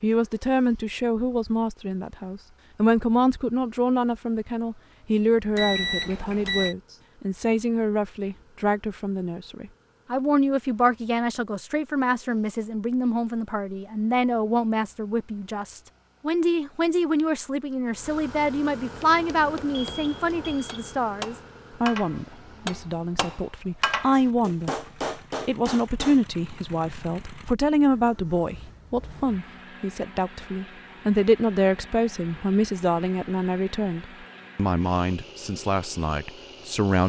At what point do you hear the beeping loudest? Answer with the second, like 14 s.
6 s.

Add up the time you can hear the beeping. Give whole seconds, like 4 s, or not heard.
2 s.